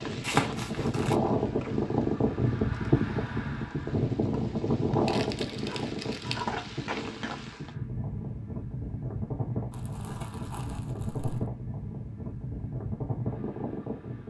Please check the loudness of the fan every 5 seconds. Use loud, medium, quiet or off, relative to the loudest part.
loud, medium, medium.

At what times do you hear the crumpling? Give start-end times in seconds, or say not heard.
0.2-1.1, 5.0-6.5, 9.7-11.5.